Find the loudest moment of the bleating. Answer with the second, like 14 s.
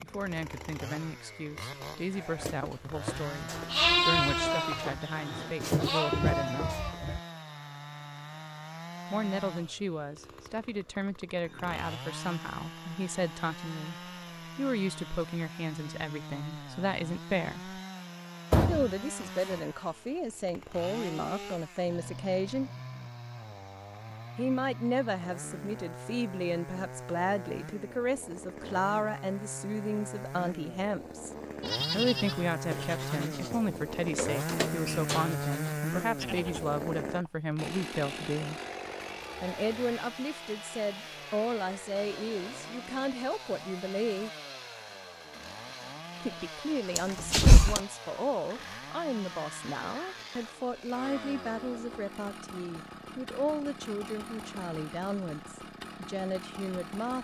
4 s.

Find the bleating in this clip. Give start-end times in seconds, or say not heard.
2.1-7.2, 31.6-36.6.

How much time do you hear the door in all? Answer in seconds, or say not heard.
2 s.